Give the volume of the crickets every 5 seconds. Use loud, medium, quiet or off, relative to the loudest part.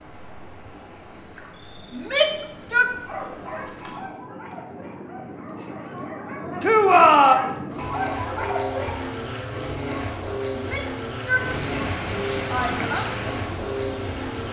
quiet, loud, loud.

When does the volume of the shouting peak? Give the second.
7 s.